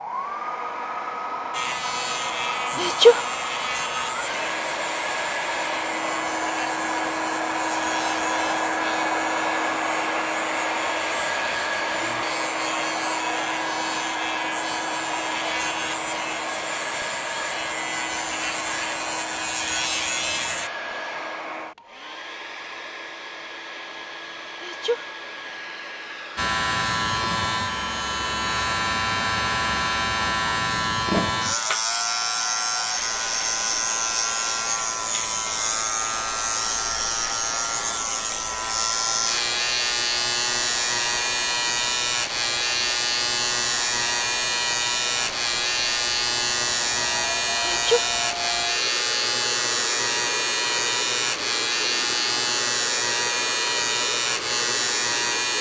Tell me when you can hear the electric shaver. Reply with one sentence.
The electric shaver can be heard from 1.5 to 20.7 s and from 26.4 to 55.5 s.